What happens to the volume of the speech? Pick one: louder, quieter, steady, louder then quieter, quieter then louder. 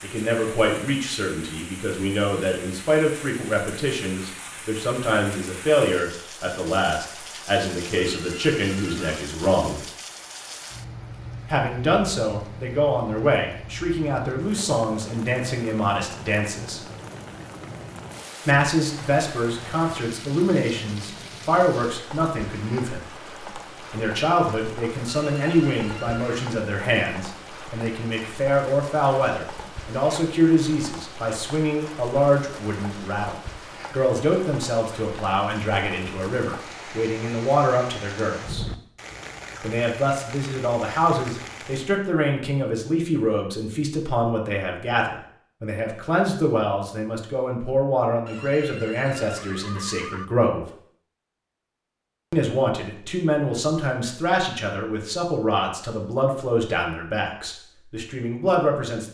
steady.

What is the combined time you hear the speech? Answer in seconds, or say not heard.
52 s.